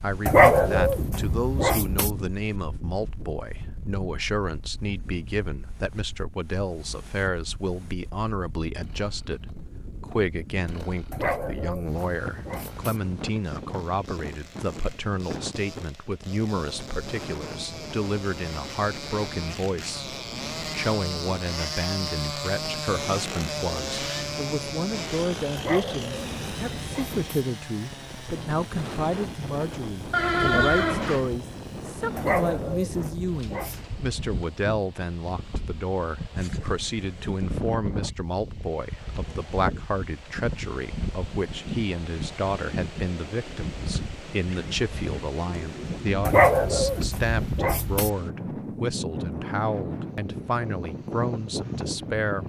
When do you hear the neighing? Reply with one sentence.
You can hear the neighing from 30.1 to 31.4 s.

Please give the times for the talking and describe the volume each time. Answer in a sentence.
You can hear the talking from 0.0 to 52.4 s, at a steady volume.